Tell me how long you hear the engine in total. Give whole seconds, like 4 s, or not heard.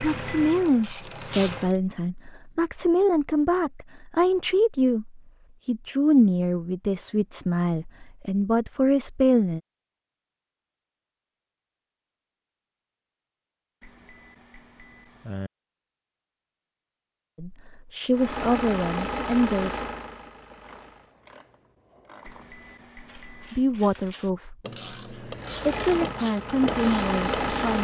7 s.